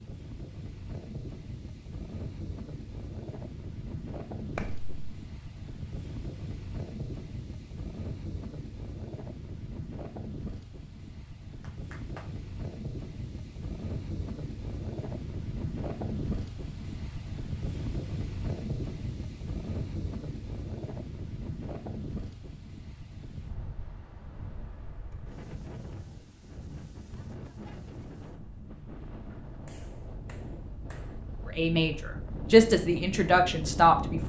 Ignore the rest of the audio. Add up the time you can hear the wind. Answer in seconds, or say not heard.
34 s.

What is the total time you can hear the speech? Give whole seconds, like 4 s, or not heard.
3 s.